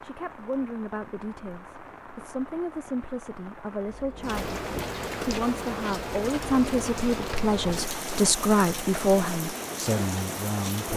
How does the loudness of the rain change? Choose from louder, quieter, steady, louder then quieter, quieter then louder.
louder.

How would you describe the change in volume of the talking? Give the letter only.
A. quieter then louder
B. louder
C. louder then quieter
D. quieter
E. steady
B.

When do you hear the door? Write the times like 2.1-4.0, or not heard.
4.2-4.9.